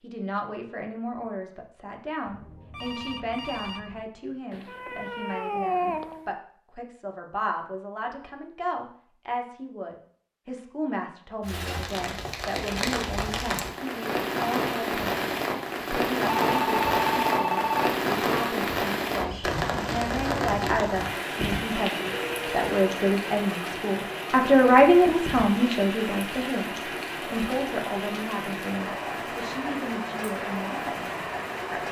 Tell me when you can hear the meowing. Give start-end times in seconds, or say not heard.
4.5-6.3.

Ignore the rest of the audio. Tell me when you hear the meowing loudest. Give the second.
6 s.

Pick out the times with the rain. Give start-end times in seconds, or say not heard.
11.4-31.8.